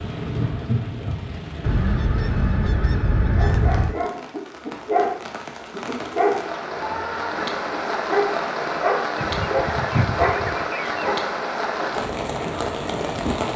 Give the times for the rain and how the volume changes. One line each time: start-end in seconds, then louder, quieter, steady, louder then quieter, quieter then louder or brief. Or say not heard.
0.0-13.5 quieter then louder.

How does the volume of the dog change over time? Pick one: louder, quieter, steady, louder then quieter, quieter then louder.
quieter then louder.